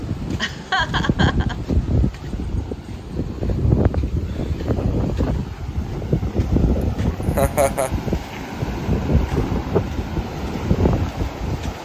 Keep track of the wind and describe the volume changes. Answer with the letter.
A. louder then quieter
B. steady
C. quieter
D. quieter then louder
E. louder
B.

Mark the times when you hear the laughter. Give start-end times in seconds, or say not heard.
0.3-1.6, 7.2-7.9.